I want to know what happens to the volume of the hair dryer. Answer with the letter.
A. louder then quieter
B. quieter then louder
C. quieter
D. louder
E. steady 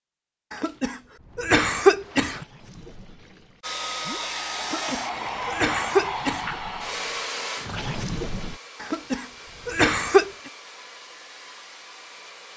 C.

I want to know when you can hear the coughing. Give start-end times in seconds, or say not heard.
0.5-2.5, 4.6-6.5, 8.8-10.3.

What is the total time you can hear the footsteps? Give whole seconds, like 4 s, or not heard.
not heard.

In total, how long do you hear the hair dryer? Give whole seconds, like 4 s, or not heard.
9 s.